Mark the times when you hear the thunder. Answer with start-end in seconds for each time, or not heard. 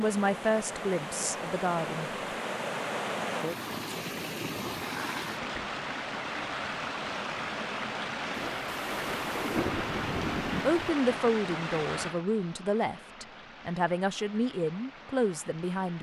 8.3-10.8.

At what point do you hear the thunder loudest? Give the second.
10 s.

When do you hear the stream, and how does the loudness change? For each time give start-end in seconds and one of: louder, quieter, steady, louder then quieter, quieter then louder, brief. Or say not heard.
0.0-15.9 quieter.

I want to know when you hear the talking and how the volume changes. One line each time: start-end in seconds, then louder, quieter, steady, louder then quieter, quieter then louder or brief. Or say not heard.
0.0-2.1 brief
10.7-15.9 quieter then louder.